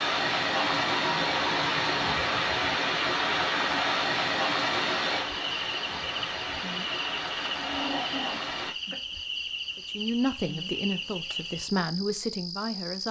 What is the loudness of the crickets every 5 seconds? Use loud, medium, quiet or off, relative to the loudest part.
off, loud, loud.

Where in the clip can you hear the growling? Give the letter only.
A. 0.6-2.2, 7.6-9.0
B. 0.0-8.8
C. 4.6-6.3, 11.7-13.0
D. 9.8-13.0
A.